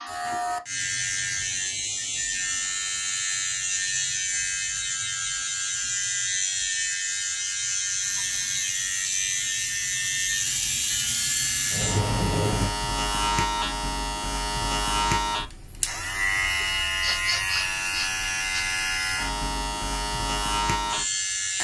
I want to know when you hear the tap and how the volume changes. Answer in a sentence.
You can hear the tap from 8.0 to 12.8 s, getting louder.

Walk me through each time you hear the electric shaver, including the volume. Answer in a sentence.
You can hear the electric shaver from 0.0 to 21.5 s, at a steady volume.